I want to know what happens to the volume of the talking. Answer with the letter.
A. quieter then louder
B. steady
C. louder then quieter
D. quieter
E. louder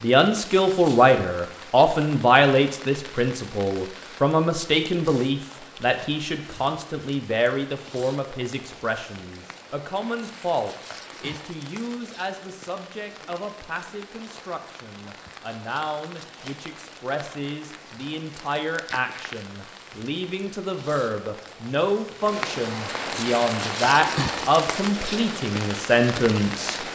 A.